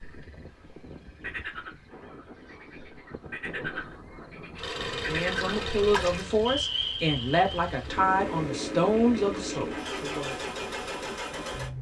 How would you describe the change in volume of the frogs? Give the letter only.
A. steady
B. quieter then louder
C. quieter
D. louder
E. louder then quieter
B.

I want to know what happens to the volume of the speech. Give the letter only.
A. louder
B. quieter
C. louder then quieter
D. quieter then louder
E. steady
E.